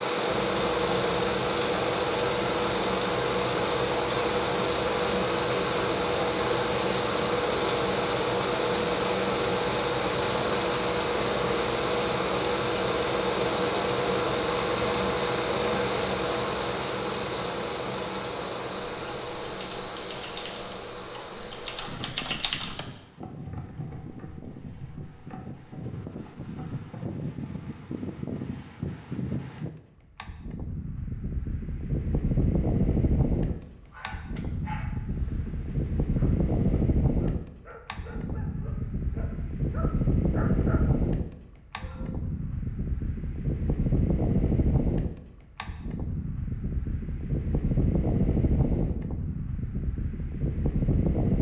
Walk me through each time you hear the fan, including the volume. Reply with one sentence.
The fan can be heard from 0.0 to 51.3 s, getting quieter then louder.